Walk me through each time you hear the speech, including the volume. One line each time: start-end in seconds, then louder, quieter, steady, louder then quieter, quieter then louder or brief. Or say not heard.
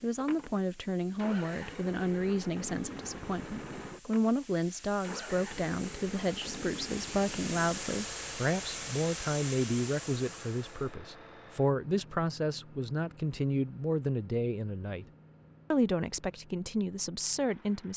0.0-15.1 steady
15.7-17.9 brief.